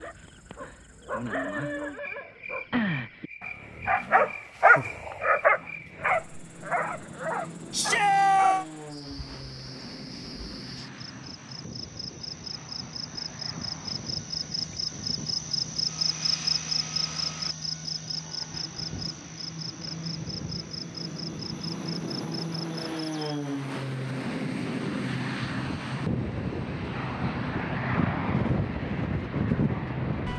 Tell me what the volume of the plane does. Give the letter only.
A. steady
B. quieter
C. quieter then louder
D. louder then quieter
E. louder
E.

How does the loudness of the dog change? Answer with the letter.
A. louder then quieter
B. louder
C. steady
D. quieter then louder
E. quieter
A.